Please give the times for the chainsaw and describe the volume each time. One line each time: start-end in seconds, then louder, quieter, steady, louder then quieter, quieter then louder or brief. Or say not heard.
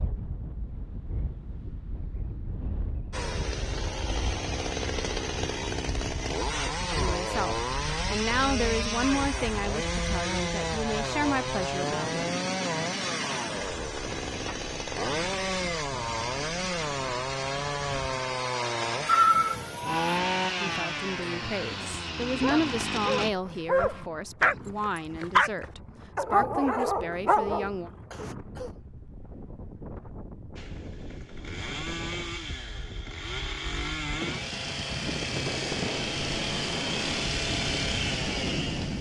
3.1-23.3 steady
30.6-38.9 louder.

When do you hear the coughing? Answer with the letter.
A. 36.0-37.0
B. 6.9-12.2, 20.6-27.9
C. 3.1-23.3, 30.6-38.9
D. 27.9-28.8
D.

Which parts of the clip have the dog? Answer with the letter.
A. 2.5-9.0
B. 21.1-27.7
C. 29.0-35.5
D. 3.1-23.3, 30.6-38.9
B.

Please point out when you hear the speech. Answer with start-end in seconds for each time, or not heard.
6.9-12.2, 20.6-27.9.